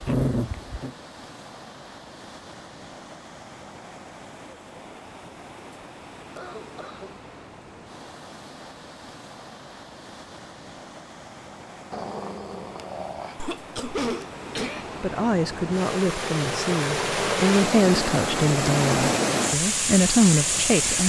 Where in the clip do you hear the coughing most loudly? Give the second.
14 s.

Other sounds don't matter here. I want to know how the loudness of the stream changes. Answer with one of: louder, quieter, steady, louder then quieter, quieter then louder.
louder.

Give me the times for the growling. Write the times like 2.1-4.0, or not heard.
0.0-0.9, 11.9-13.5.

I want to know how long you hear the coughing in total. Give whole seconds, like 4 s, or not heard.
2 s.